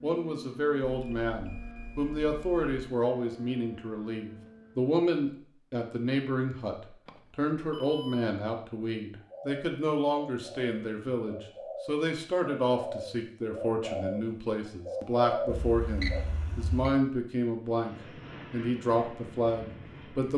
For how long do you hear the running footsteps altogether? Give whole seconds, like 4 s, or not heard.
not heard.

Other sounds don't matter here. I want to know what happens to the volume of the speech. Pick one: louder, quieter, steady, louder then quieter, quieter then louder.
steady.